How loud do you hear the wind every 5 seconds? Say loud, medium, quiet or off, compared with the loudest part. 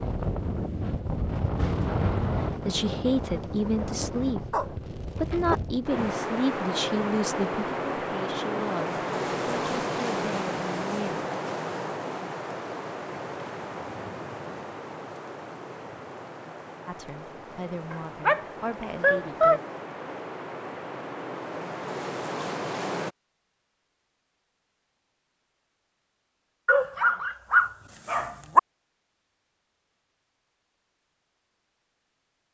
loud, loud, loud, medium, loud, off, off.